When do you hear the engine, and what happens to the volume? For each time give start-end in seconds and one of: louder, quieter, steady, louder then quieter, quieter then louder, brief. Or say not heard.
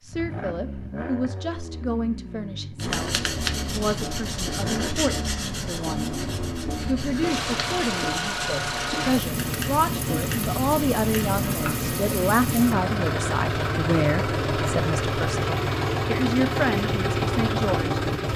0.1-18.3 louder.